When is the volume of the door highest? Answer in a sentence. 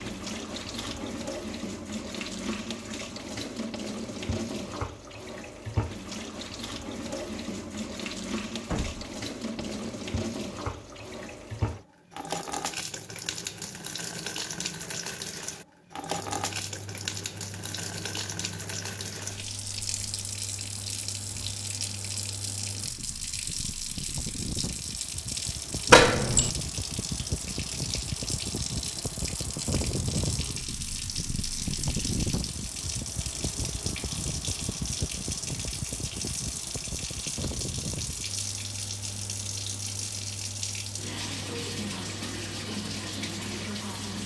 The volume of the door peaks at 26 seconds.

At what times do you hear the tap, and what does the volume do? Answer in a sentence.
The tap can be heard from 0.0 to 44.2 s, at a steady volume.